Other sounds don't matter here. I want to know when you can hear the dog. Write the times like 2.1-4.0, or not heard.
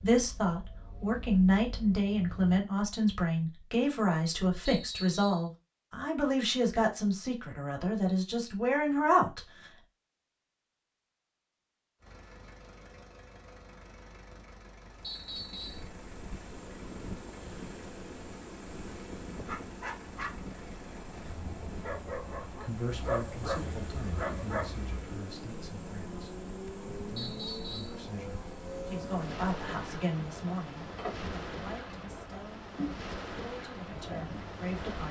19.4-20.4, 21.1-24.7.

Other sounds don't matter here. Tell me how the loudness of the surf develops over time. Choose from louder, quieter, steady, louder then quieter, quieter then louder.
steady.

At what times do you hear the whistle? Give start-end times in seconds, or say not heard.
4.7-5.5, 15.0-15.9, 27.1-28.0.